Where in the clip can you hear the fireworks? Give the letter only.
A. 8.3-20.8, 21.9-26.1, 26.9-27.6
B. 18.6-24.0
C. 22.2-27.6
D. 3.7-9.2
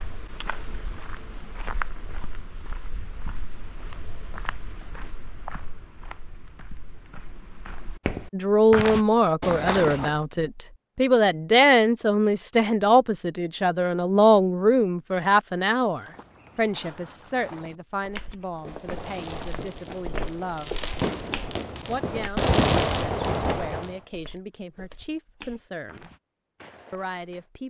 B.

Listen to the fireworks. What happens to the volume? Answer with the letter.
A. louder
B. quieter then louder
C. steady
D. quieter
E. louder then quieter
A.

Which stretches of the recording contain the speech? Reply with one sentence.
The speech can be heard from 8.3 to 20.8 s, from 21.9 to 26.1 s and from 26.9 to 27.6 s.